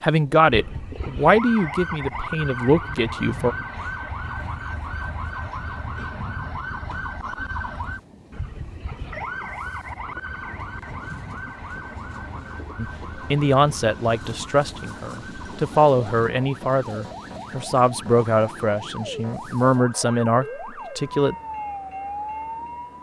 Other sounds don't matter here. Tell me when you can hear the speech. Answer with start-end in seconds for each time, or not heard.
0.0-3.5, 12.8-21.4.